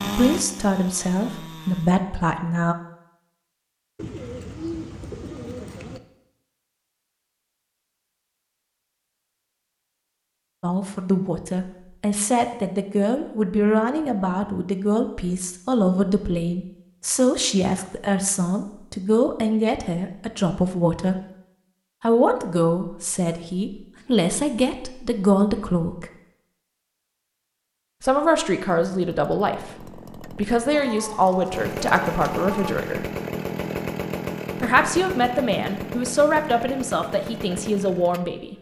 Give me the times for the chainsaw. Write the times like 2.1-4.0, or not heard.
0.0-2.0, 28.8-38.5.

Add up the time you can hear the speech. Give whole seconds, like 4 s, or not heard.
26 s.